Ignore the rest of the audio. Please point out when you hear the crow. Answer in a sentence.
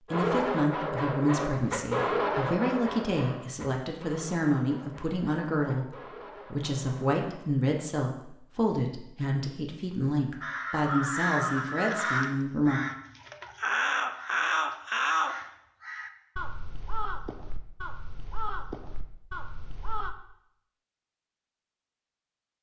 You can hear the crow from 10.4 to 20.1 s.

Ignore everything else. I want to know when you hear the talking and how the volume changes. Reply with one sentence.
The talking can be heard from 0.1 to 12.8 s, at a steady volume.